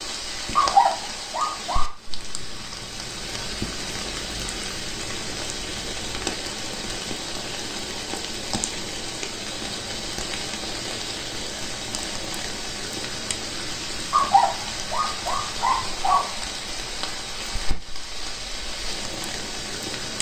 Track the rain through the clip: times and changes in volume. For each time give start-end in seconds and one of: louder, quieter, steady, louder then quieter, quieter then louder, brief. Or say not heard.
0.0-20.1 steady.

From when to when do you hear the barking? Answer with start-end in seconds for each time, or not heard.
0.6-1.9, 14.1-16.3.